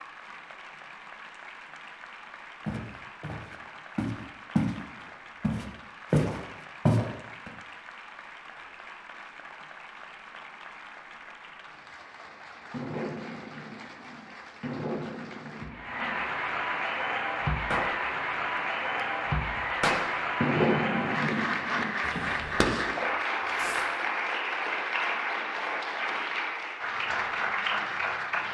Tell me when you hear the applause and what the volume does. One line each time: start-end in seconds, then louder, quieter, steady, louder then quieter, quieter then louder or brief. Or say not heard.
0.0-28.4 louder.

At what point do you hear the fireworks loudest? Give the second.
21 s.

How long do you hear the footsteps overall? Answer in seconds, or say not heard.
4 s.